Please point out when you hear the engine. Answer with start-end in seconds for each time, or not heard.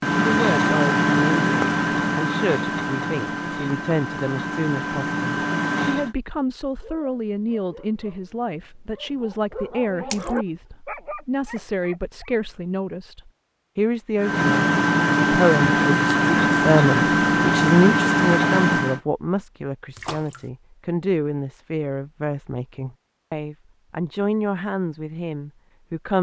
0.0-6.2, 14.2-19.0.